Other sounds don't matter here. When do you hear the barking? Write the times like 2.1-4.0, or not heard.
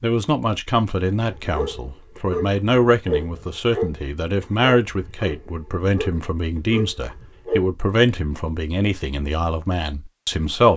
1.2-7.7.